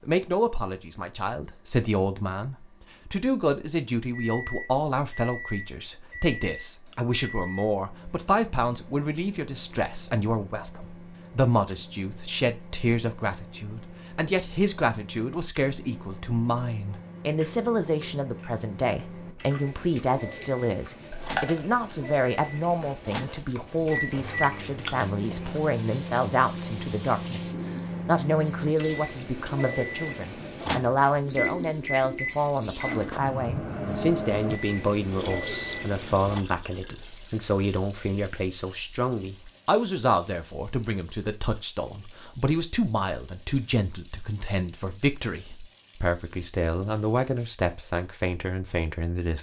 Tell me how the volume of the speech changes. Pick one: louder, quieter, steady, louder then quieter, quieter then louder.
steady.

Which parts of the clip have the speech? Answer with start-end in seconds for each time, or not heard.
0.0-49.3.